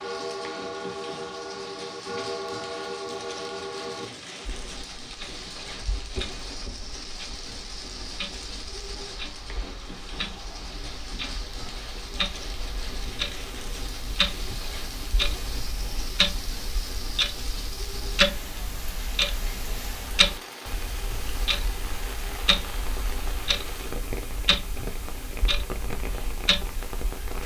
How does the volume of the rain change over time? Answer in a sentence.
The volume of the rain stays about the same.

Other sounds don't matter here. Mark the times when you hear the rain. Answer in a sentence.
The rain can be heard from 0.0 to 27.4 s.